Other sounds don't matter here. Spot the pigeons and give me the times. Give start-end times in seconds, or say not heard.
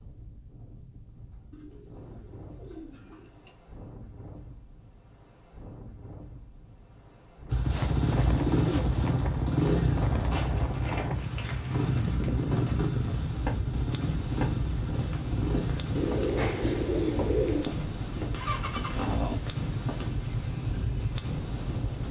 1.5-3.5, 7.7-9.2, 15.9-17.7.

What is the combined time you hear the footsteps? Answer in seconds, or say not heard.
10 s.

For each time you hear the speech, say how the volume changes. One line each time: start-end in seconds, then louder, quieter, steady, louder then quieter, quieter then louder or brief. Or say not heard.
not heard.